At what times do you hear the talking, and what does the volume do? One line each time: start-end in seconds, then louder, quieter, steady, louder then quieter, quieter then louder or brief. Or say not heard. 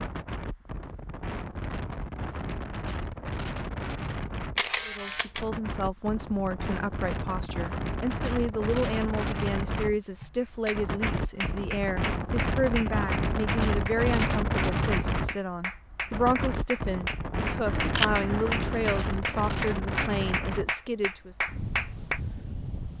4.8-21.4 steady.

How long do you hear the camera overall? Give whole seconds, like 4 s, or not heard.
3 s.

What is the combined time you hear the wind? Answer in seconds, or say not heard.
23 s.